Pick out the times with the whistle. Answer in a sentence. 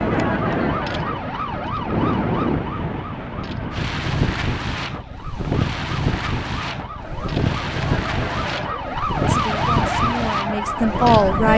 The whistle can't be heard in this clip.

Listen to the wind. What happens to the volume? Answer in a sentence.
The loudness of the wind stays about the same.